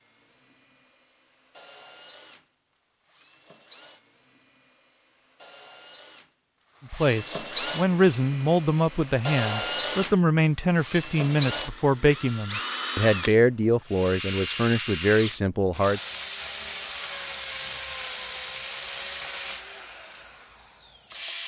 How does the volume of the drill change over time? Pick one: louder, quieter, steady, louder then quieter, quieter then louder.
louder.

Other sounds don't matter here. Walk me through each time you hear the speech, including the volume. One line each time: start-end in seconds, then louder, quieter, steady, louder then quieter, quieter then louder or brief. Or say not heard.
6.9-16.0 steady.